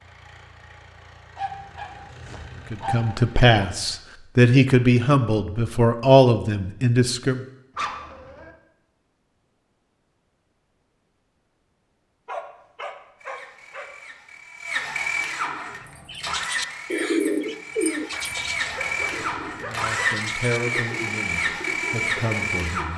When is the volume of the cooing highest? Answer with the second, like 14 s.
17 s.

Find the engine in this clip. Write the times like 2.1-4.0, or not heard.
0.0-4.0, 13.2-22.9.